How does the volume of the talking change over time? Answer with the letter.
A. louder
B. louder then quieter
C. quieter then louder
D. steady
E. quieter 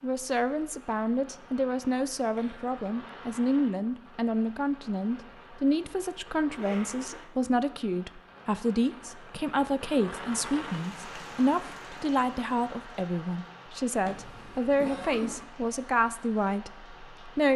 D.